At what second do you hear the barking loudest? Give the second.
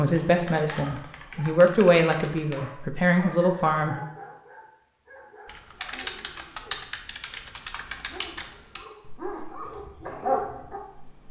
10 s.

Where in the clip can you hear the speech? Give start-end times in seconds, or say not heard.
0.0-4.0.